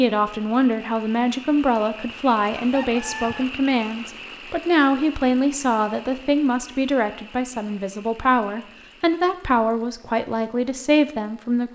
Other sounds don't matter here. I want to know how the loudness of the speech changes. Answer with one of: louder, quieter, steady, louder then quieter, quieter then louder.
steady.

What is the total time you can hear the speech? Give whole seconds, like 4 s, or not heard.
12 s.